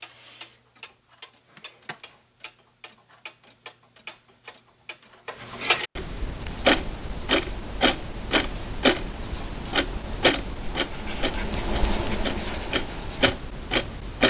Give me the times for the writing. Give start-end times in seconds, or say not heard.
6.2-13.4.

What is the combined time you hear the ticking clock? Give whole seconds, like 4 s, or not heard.
14 s.